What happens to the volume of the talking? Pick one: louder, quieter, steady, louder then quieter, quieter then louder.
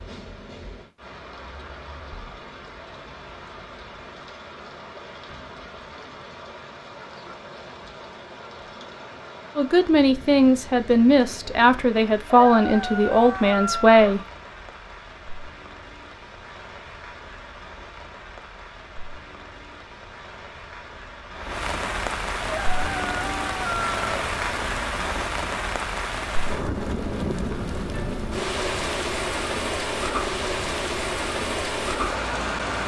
steady.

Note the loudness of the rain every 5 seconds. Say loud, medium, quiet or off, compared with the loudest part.
quiet, quiet, quiet, quiet, loud, loud, loud.